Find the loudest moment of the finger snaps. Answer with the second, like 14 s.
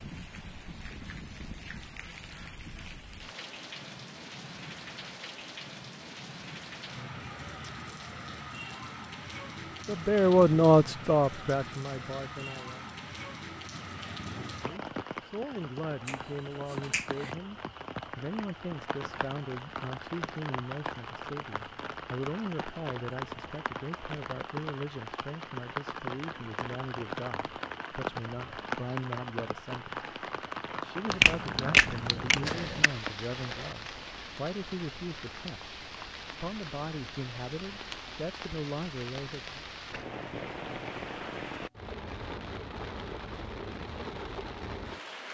32 s.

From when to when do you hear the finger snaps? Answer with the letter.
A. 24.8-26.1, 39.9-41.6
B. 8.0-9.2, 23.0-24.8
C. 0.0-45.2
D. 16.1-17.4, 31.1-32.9
D.